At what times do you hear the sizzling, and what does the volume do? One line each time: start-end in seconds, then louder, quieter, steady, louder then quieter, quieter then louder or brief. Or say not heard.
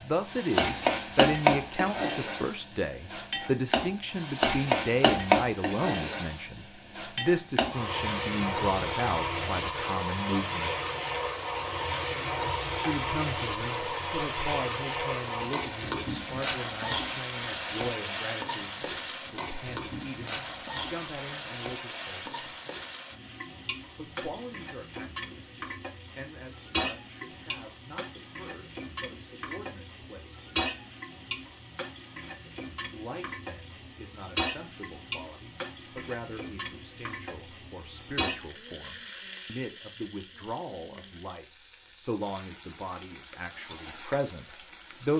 0.0-45.1 quieter.